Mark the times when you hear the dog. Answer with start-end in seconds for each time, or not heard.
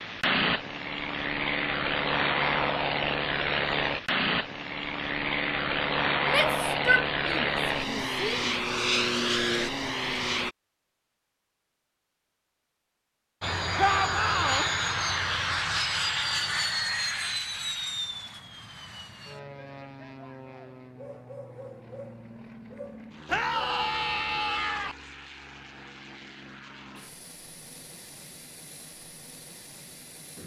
20.9-23.6.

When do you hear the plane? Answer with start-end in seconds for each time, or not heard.
0.0-10.6, 13.4-30.4.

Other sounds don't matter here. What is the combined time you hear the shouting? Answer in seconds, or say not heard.
5 s.